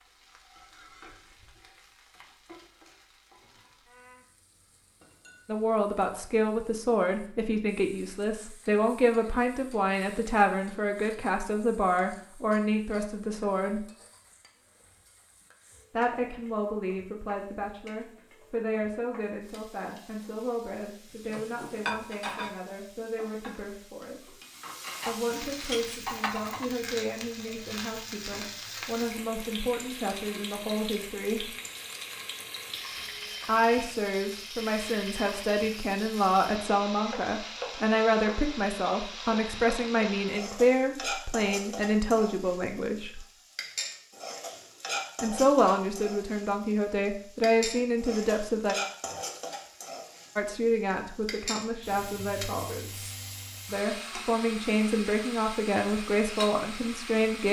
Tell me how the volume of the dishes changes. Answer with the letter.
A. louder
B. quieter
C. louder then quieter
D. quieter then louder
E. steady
D.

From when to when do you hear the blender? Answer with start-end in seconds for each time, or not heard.
not heard.